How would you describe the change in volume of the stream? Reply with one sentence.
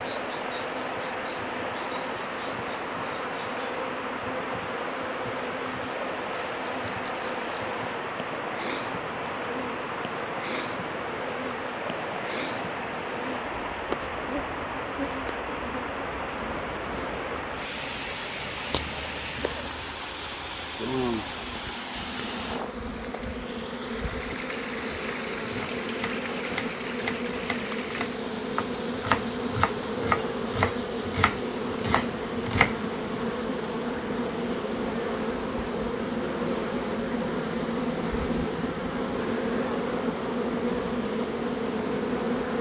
The loudness of the stream goes down.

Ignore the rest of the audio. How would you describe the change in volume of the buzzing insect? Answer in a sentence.
The loudness of the buzzing insect goes up.